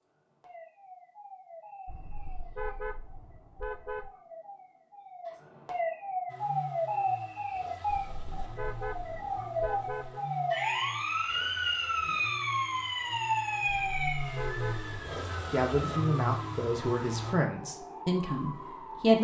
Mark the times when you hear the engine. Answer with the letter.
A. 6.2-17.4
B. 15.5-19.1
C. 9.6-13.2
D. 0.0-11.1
A.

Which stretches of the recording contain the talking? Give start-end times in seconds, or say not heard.
15.5-19.1.